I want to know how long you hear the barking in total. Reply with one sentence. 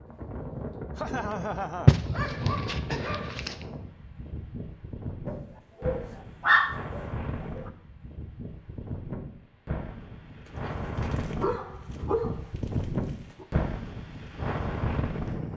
You can hear the barking for 7 seconds altogether.